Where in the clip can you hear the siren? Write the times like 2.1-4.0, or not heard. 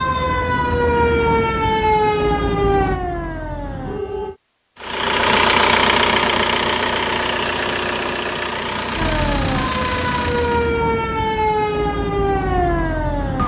0.0-4.3, 8.9-13.4.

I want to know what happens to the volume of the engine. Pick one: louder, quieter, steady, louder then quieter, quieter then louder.
quieter.